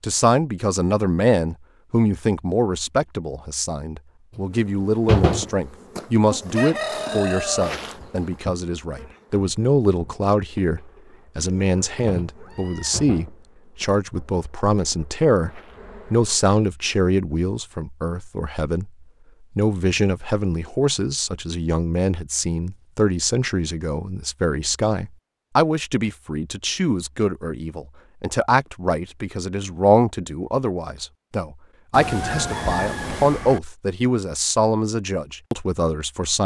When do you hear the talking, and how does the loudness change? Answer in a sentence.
The talking can be heard from 0.0 to 36.4 s, at a steady volume.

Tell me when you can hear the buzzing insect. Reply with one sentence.
You can hear the buzzing insect from 4.3 to 16.4 s.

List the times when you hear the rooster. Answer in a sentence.
You can hear the rooster from 6.5 to 8.2 s and from 32.0 to 33.6 s.